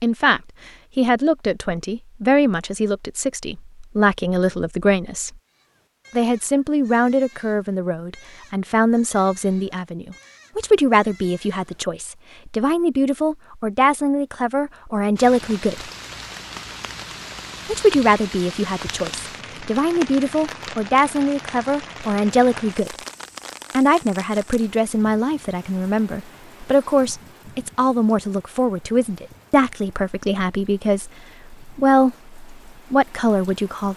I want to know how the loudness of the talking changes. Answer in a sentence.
The loudness of the talking stays about the same.